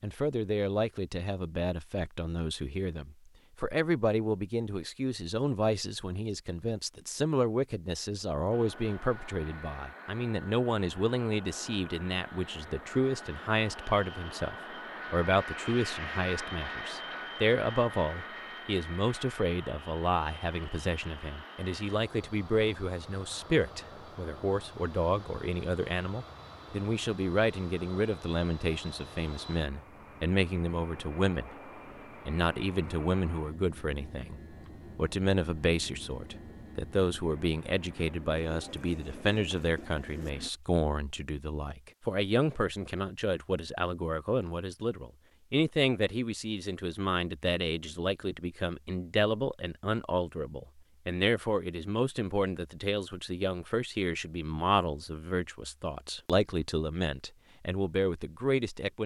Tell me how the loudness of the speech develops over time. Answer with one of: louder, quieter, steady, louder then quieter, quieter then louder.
steady.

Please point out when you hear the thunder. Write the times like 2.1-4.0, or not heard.
not heard.